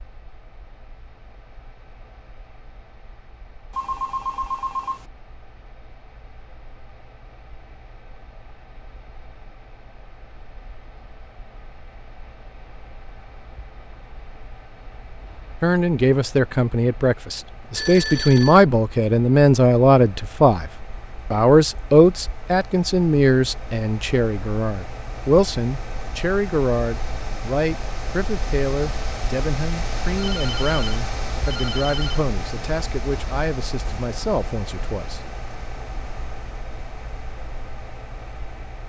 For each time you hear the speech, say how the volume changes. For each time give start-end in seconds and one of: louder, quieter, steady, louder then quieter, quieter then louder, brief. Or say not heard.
15.6-35.2 quieter.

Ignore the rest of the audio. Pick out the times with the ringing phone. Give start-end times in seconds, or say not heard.
3.7-5.0, 17.6-18.6, 30.1-32.2.